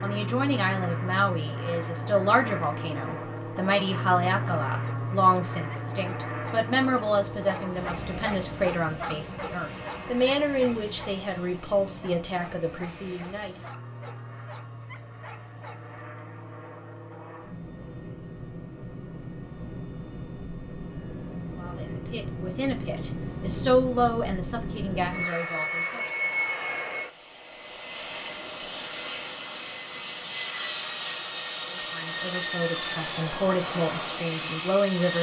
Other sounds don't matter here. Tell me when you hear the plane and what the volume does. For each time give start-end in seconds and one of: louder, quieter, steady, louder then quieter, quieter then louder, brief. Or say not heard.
0.0-35.1 quieter then louder.